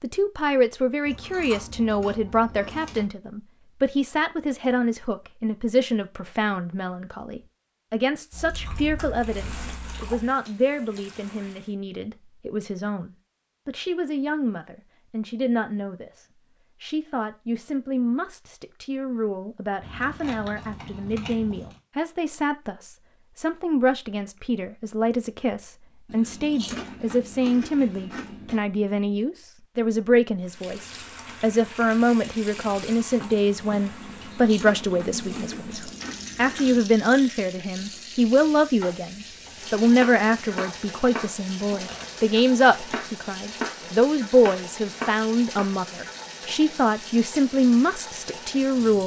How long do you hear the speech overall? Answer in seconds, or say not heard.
49 s.